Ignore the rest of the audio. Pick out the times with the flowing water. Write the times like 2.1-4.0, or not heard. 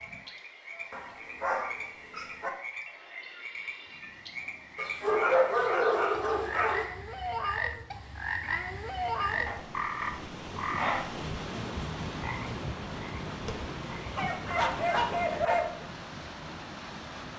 0.0-17.3.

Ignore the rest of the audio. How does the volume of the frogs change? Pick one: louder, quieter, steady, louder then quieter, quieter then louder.
louder then quieter.